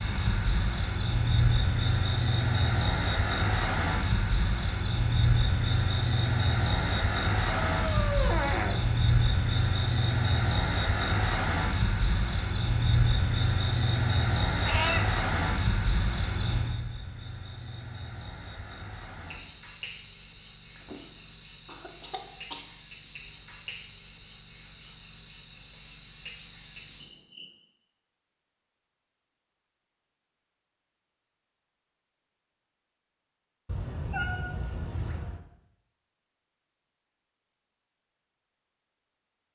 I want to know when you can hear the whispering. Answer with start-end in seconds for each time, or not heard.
not heard.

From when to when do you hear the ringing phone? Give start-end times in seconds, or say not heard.
not heard.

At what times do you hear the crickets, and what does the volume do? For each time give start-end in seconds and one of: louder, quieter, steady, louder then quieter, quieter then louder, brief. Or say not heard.
0.0-27.5 quieter.